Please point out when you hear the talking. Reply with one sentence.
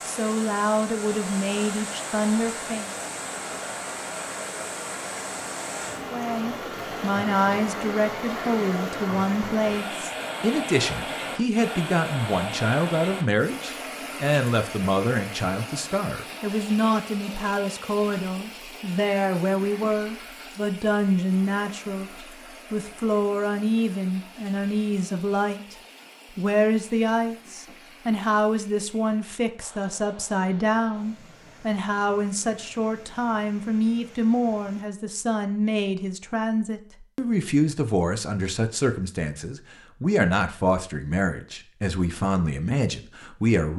You can hear the talking from 0.0 to 3.0 s, from 6.1 to 22.1 s, from 22.7 to 25.8 s and from 26.4 to 43.7 s.